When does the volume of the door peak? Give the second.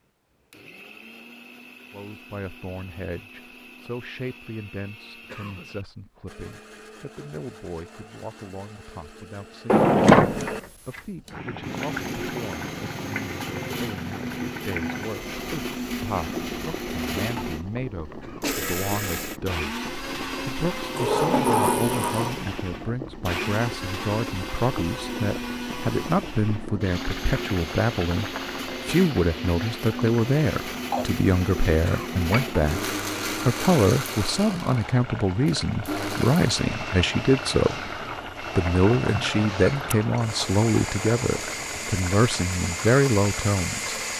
10 s.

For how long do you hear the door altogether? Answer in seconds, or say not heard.
4 s.